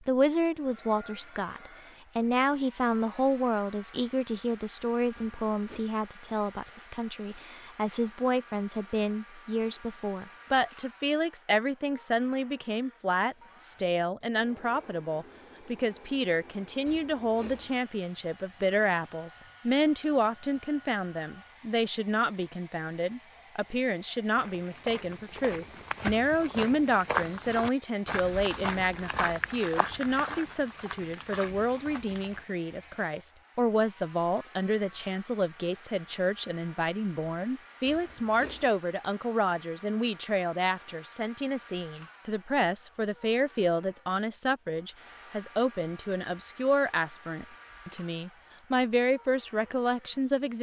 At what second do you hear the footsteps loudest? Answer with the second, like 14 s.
27 s.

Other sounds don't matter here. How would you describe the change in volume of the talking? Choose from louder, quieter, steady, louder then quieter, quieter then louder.
steady.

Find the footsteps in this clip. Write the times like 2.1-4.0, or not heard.
24.4-32.5.